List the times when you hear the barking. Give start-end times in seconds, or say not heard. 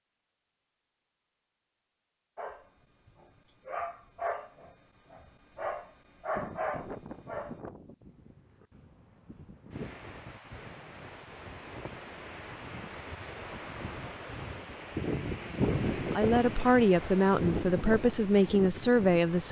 2.4-7.6.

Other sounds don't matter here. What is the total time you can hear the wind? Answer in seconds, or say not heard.
13 s.